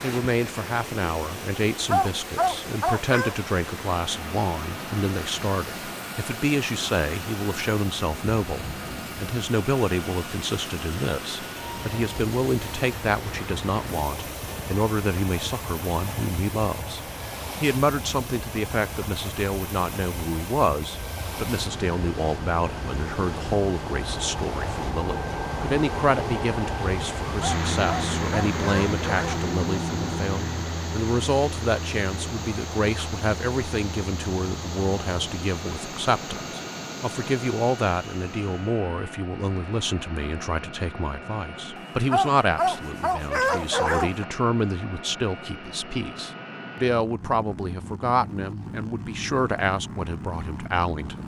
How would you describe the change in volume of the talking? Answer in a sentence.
The loudness of the talking stays about the same.